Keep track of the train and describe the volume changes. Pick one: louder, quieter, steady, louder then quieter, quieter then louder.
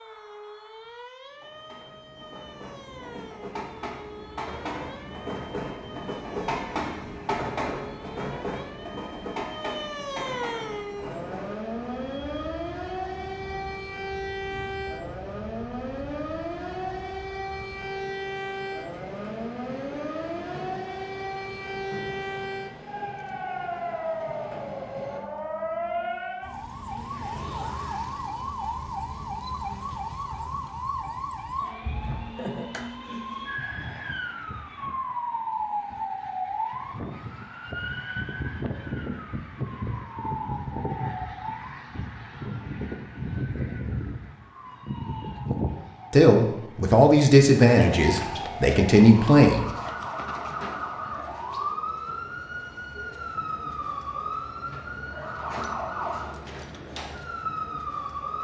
louder then quieter.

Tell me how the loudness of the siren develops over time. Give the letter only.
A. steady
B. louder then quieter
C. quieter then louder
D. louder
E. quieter
D.